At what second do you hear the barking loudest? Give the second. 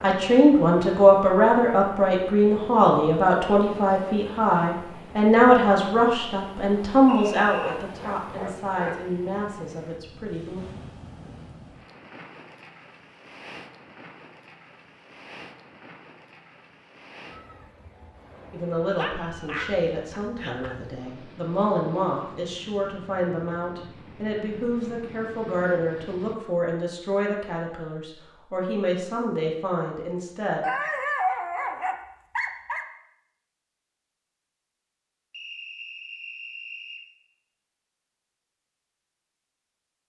31 s.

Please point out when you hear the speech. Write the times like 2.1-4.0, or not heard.
0.0-10.6, 18.5-30.6.